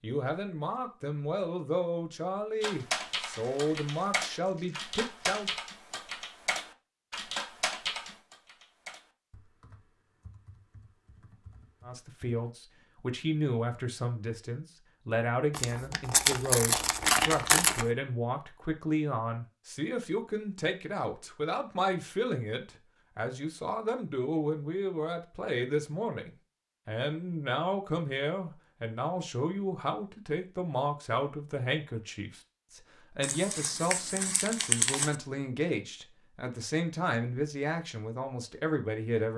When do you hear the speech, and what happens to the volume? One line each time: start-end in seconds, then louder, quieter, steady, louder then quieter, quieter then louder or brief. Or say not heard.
0.0-5.5 steady
11.8-39.3 steady.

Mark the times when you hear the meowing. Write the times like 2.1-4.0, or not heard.
not heard.